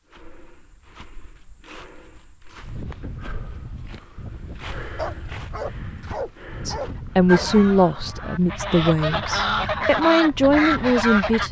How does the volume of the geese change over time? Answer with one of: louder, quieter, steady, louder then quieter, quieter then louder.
louder.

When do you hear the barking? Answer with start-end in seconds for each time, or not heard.
5.0-7.5.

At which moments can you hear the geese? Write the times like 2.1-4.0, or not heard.
7.2-11.4.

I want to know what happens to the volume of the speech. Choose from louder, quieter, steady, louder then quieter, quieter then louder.
quieter then louder.